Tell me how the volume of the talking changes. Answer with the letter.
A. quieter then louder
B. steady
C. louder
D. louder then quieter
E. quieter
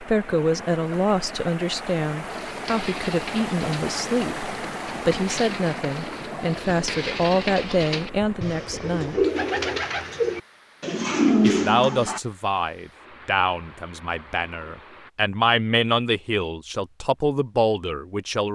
B.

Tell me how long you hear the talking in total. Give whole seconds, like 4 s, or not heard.
16 s.